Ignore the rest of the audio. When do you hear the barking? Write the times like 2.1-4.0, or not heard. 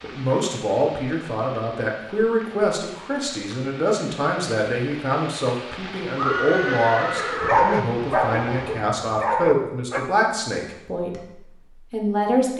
7.4-10.0.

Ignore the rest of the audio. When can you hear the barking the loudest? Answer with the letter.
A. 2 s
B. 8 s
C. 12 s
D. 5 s
B.